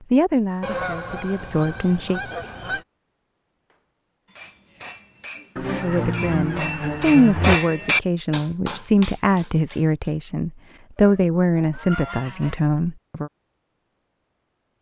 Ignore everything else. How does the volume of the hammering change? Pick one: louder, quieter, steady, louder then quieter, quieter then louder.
louder then quieter.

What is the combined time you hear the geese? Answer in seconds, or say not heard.
6 s.